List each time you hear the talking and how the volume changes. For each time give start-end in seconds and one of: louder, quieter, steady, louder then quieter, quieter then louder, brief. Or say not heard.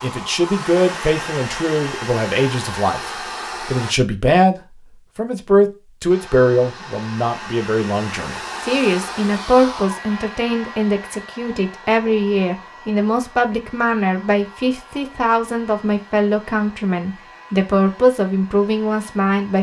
0.0-19.5 steady.